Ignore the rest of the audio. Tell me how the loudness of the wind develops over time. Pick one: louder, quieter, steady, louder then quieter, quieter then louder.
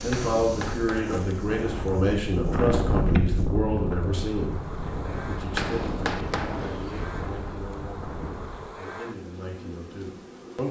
louder then quieter.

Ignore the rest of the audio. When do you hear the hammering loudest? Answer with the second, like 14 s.
6 s.